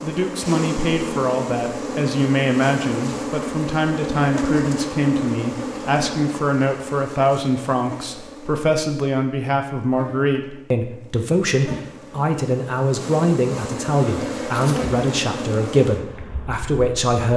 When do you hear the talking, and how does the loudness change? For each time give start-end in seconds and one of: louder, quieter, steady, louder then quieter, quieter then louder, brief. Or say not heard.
0.0-17.3 steady.